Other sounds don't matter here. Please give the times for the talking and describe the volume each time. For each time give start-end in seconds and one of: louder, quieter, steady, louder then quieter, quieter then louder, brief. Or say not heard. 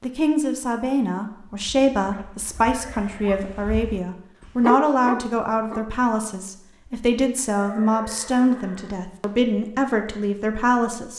0.0-11.1 steady.